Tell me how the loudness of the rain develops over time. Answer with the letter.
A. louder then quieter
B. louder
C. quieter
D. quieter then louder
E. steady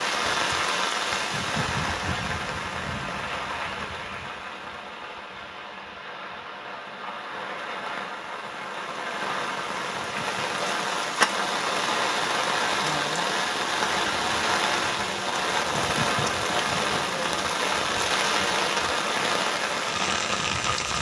D.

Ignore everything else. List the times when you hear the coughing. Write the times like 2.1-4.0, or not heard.
1.3-3.2, 9.9-10.6, 15.7-17.4.